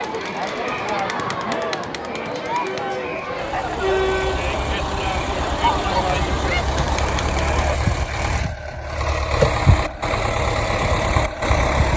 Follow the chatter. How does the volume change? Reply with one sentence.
The volume of the chatter stays about the same.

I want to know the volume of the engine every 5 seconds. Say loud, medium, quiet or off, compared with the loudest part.
medium, loud, loud.